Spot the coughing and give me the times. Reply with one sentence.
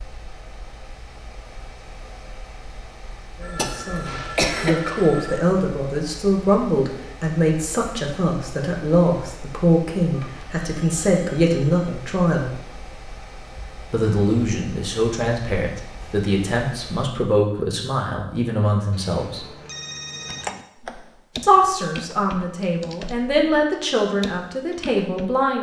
You can hear the coughing from 3.5 to 4.9 s.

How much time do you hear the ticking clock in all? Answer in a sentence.
The ticking clock can't be heard in this clip.